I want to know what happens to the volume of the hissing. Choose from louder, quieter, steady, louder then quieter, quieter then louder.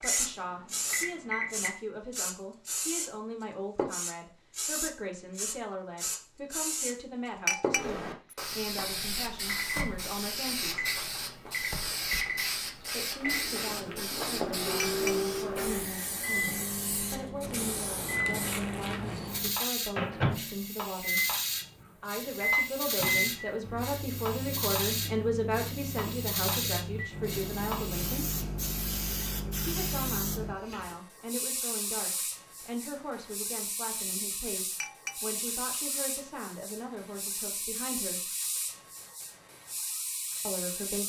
quieter.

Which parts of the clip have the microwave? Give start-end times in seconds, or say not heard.
0.0-1.7, 9.4-30.6.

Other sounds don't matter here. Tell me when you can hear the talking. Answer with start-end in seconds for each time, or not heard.
0.0-10.8, 12.8-21.3, 22.0-28.3, 29.6-38.3, 40.5-41.0.